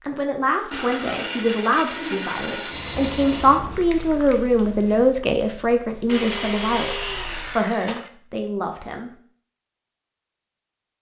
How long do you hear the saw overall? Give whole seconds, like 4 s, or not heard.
5 s.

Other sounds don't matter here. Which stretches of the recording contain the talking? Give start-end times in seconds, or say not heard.
0.0-9.1.